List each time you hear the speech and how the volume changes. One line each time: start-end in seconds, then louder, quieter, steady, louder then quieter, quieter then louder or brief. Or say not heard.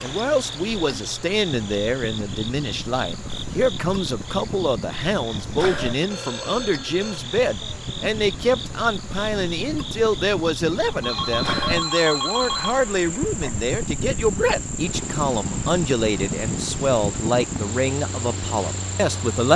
0.0-19.5 steady.